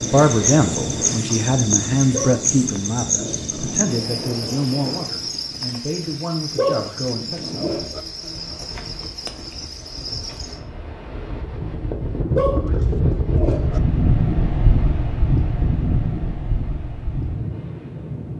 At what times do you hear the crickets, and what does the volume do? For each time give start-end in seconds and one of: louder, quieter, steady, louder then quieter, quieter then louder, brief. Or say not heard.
0.0-10.6 quieter.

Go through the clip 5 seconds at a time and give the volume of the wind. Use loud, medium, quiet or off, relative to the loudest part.
medium, quiet, loud, loud.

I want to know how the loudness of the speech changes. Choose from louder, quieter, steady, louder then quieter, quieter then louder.
quieter.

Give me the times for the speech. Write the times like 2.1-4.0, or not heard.
0.0-7.8.